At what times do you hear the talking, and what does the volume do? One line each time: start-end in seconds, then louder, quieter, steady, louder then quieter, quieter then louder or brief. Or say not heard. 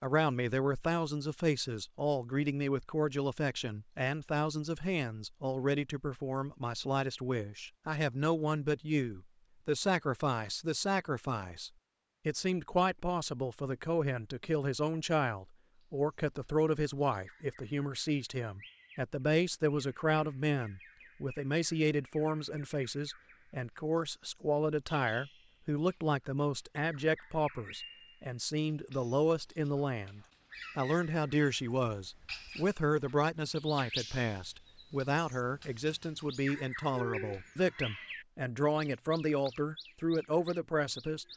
0.0-41.2 steady.